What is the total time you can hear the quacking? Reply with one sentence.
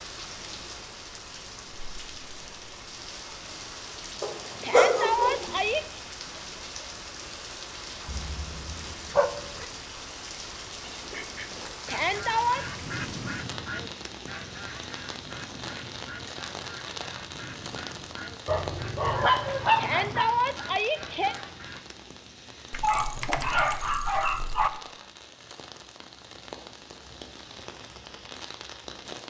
The quacking can be heard for 11 seconds in total.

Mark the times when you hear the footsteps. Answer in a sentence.
You can't hear the footsteps here.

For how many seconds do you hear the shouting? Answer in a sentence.
You can hear the shouting for 4 seconds altogether.